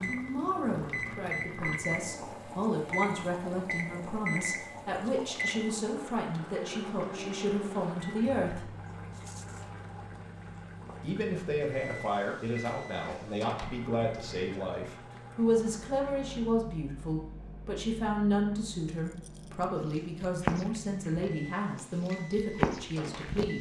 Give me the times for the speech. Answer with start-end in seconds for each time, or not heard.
0.0-8.7, 11.0-23.5.